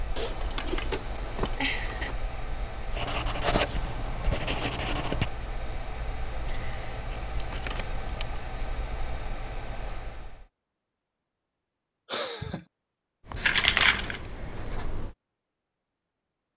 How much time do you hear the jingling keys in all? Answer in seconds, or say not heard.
5 s.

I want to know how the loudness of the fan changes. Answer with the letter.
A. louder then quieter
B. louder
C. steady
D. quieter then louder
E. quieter
C.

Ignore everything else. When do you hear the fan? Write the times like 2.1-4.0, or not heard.
0.0-10.4.